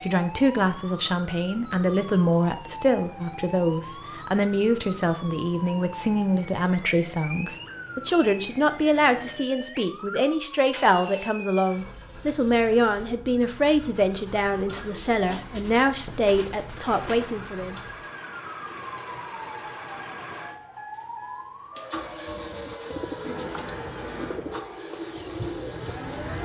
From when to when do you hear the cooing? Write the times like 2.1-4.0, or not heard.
14.7-17.3, 22.2-26.3.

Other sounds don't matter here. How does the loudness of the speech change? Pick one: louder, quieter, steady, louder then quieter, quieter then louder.
steady.